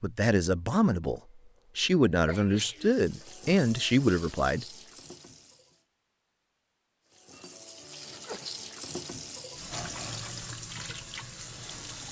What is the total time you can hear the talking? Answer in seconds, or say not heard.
5 s.